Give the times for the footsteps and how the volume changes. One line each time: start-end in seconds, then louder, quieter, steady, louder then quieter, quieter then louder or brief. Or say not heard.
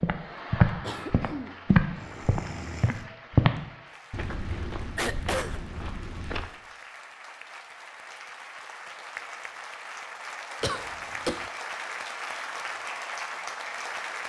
0.0-6.5 quieter.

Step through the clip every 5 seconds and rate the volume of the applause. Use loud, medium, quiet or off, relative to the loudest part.
medium, medium, loud.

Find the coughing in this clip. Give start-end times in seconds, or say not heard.
0.8-3.0, 5.0-5.6, 10.6-11.5.